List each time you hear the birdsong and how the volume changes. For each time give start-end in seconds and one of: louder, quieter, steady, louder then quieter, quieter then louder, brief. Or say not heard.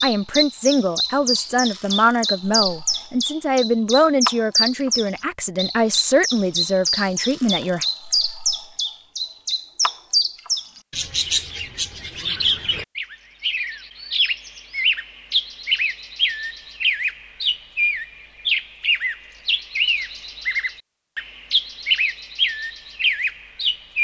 0.0-23.9 steady.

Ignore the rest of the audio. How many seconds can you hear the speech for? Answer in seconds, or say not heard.
8 s.